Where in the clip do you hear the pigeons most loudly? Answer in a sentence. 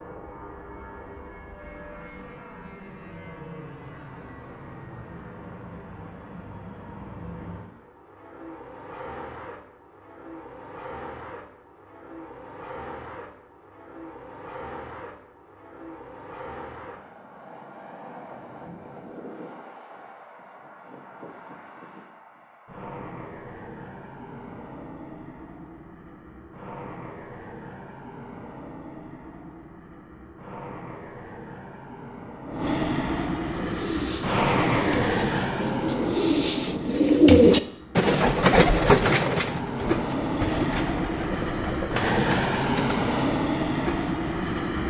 The loudest moment of the pigeons is at 37 seconds.